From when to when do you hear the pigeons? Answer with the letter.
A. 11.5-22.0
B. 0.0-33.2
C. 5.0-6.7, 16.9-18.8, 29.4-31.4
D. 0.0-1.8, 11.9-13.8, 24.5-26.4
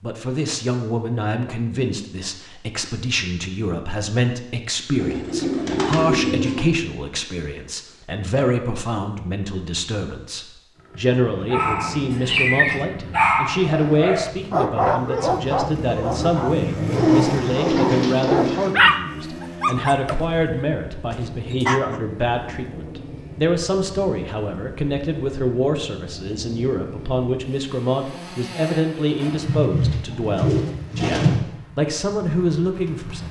C.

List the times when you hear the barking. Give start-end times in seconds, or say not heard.
11.5-22.0.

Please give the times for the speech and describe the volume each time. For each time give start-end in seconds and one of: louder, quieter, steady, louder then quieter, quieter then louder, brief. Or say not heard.
0.0-33.2 steady.